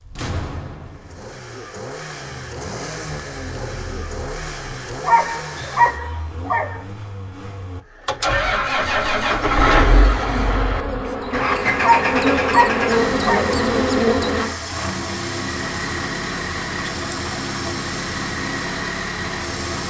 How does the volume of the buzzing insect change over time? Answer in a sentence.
The volume of the buzzing insect goes up.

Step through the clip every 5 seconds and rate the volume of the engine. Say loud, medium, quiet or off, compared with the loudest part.
medium, loud, loud, loud.